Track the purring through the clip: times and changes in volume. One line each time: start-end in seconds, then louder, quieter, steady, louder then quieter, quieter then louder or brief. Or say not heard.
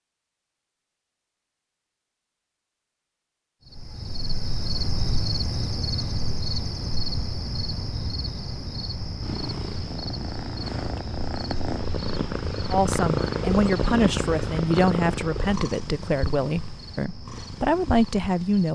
9.2-18.6 louder then quieter.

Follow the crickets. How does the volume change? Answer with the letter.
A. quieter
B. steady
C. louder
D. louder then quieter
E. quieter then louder
A.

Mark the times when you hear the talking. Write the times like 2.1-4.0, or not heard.
12.7-18.6.